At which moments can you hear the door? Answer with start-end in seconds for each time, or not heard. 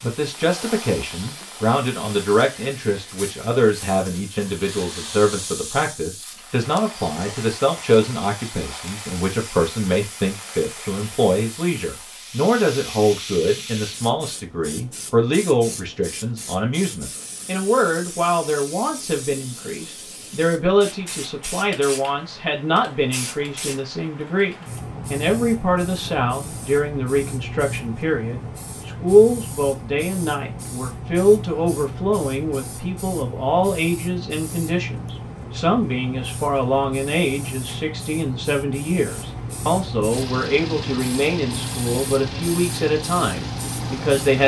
not heard.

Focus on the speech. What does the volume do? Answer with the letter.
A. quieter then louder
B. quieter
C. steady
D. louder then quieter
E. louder
C.